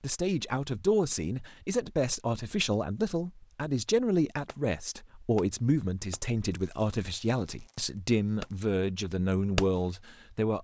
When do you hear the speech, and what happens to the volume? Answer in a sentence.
The speech can be heard from 0.0 to 10.6 s, at a steady volume.